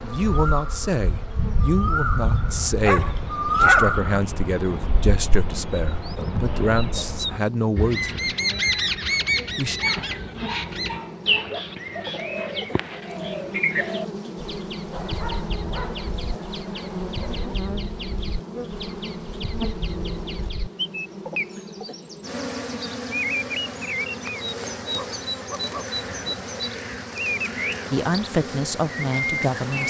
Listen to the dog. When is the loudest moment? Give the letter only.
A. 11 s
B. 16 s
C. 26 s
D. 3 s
D.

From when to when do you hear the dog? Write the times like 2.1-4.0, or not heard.
2.9-4.0, 9.8-11.4, 14.9-17.6, 24.9-26.4.